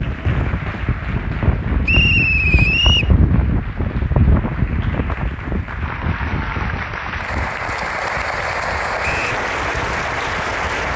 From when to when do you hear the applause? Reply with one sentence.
The applause can be heard from 0.0 to 10.9 s.